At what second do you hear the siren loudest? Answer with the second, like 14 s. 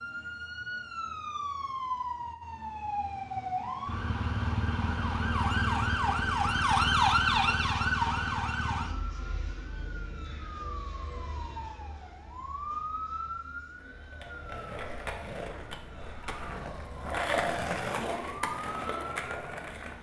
7 s.